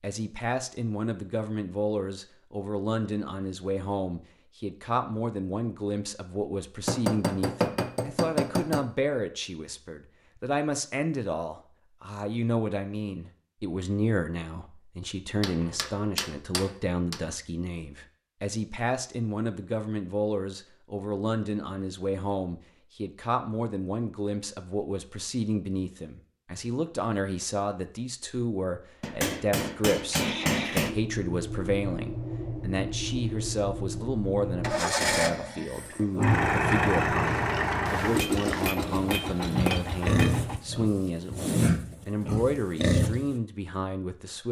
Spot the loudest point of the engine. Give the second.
37 s.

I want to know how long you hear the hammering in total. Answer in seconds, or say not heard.
8 s.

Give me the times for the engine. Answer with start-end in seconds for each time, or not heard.
30.1-40.6.